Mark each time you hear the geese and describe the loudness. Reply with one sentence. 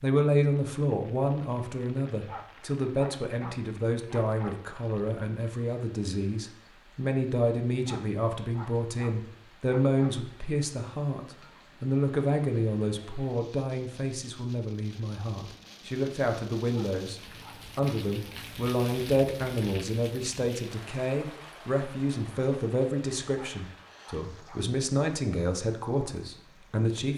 You can't hear the geese here.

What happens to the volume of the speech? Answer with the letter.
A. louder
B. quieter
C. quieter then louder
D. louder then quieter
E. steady
E.